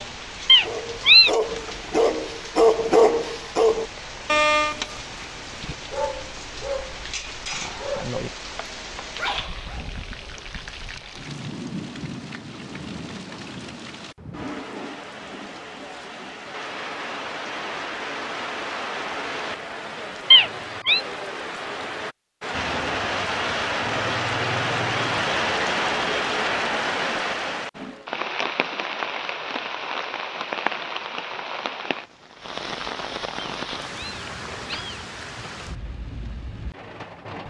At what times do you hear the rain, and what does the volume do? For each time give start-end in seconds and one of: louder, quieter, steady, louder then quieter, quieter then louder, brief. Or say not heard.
0.0-37.4 louder then quieter.